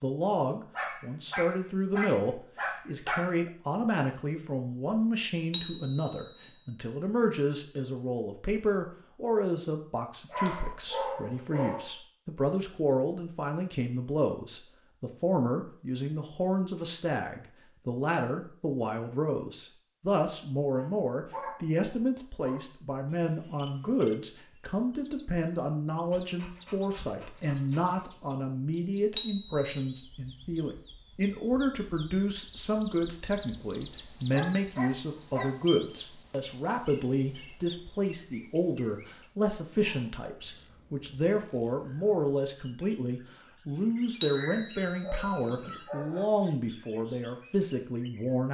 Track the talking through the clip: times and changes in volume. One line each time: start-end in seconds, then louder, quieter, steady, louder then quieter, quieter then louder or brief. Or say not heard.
0.0-48.5 steady.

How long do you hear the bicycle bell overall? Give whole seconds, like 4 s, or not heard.
3 s.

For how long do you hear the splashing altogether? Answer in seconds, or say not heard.
not heard.